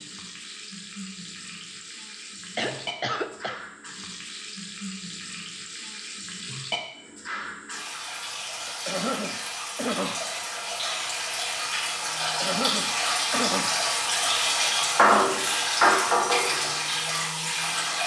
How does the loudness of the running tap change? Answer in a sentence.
The loudness of the running tap goes up.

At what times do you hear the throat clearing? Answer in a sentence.
You can hear the throat clearing from 2.5 to 3.6 s, from 8.7 to 10.2 s and from 12.2 to 13.8 s.